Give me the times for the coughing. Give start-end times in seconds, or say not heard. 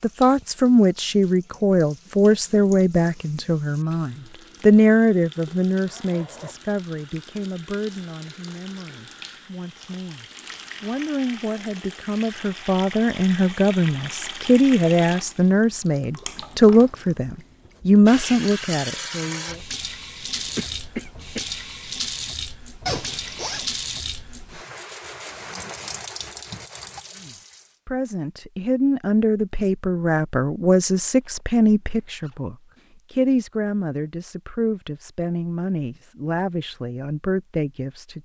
20.3-21.5.